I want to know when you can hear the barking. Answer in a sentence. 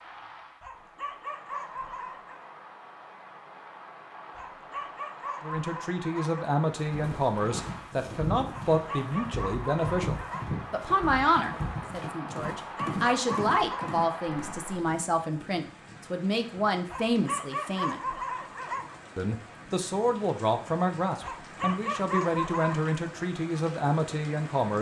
You can hear the barking from 0.6 to 2.5 s, from 4.3 to 6.5 s, from 8.7 to 10.6 s, from 12.6 to 13.9 s, from 16.9 to 19.0 s and from 21.2 to 22.9 s.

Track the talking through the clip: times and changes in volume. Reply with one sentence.
The talking can be heard from 5.4 to 18.0 s, at a steady volume; and from 19.1 to 24.7 s, at a steady volume.